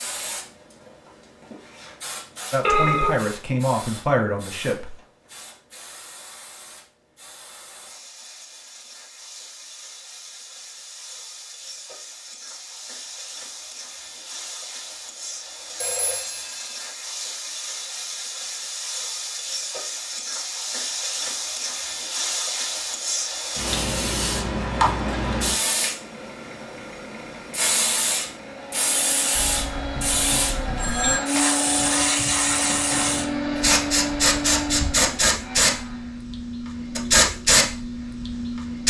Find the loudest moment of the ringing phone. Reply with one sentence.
The volume of the ringing phone peaks at 3 seconds.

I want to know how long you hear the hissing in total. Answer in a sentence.
You can hear the hissing for 39 seconds altogether.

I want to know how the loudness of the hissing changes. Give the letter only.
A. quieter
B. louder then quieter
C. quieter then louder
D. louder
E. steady
D.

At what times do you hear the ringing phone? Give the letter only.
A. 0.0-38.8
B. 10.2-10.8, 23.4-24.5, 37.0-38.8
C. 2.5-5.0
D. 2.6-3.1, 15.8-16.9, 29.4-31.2
D.